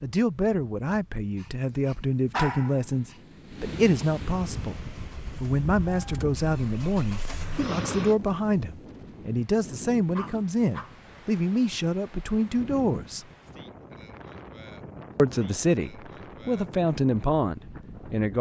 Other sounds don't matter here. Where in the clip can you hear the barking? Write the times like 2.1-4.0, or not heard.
1.4-3.1, 10.2-10.9.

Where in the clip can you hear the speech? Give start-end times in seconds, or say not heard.
0.0-13.2, 15.2-18.3.